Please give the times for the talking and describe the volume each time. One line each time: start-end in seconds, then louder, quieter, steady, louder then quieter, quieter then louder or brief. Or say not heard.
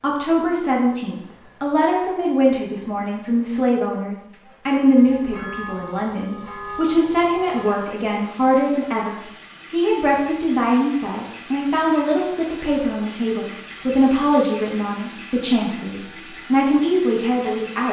0.0-17.8 steady.